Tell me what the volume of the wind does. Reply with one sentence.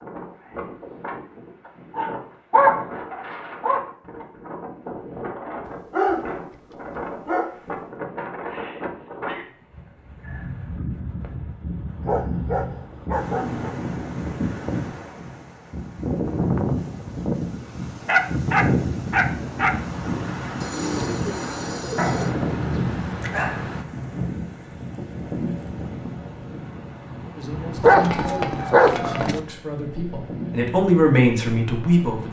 The volume of the wind goes up, then down.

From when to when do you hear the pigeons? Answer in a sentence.
You can hear the pigeons from 20.6 to 22.4 s.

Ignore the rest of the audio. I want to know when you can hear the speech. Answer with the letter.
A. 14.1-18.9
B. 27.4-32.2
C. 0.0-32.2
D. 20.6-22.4
B.